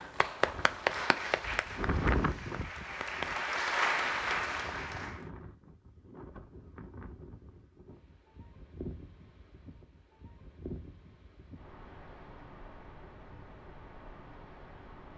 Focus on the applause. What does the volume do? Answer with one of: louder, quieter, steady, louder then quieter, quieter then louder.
quieter then louder.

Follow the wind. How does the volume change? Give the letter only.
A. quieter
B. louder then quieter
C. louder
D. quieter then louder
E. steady
A.